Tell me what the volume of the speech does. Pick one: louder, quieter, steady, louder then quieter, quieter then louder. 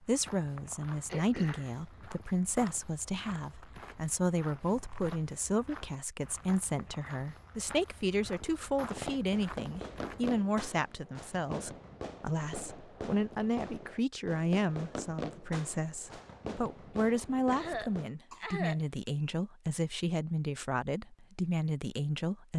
steady.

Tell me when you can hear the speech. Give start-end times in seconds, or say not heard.
0.0-22.5.